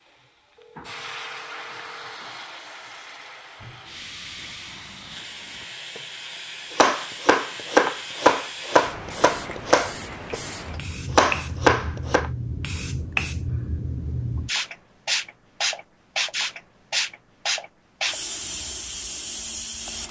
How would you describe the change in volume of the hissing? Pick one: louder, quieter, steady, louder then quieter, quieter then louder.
louder.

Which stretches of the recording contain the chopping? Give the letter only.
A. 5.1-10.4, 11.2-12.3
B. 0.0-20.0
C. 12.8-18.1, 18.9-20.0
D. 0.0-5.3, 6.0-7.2
A.